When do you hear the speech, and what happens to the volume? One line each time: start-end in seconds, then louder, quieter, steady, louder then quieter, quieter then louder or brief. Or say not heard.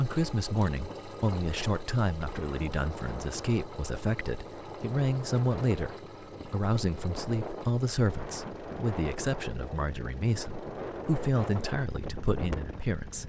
0.0-13.2 steady.